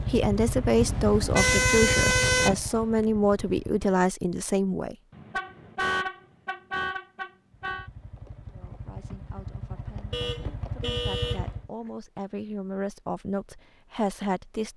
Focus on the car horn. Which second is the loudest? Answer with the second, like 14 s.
2 s.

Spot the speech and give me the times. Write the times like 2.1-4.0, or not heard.
0.0-5.0, 8.5-14.7.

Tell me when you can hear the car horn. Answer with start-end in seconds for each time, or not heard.
0.8-2.5, 5.1-7.9, 10.1-11.4.